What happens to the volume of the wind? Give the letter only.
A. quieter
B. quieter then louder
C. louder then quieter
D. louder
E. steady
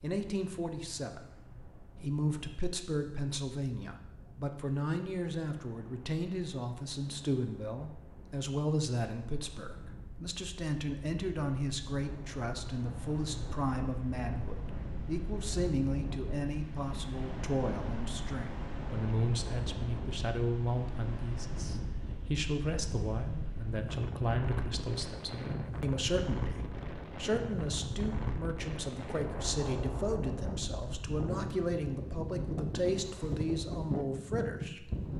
D.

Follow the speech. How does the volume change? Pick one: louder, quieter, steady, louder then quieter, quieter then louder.
steady.